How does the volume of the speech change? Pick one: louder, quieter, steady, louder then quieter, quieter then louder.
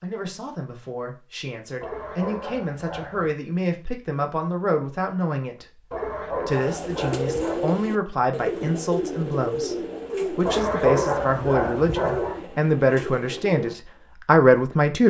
louder.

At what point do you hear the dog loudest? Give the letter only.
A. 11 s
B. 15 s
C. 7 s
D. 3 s
A.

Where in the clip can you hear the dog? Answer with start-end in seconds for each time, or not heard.
1.8-3.3, 5.9-7.7, 10.4-12.4.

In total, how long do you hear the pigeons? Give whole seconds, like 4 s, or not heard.
7 s.